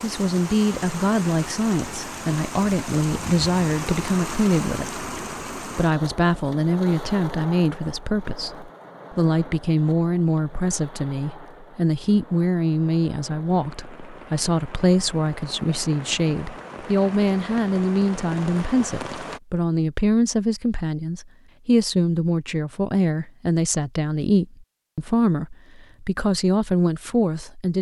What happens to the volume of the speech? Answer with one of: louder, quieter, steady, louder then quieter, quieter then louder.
steady.